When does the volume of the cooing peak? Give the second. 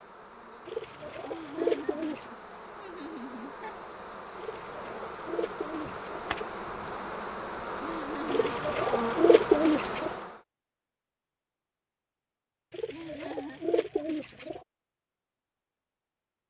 9 s.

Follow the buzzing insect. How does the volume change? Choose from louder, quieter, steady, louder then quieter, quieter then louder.
louder.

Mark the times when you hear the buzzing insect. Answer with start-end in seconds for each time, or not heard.
0.0-10.4.